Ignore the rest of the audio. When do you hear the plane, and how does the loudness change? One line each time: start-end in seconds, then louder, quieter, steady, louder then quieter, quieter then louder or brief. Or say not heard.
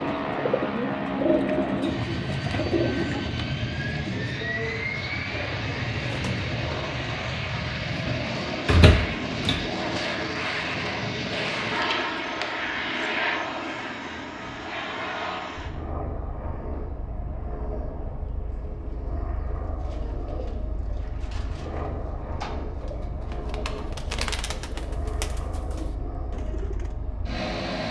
0.0-27.8 quieter.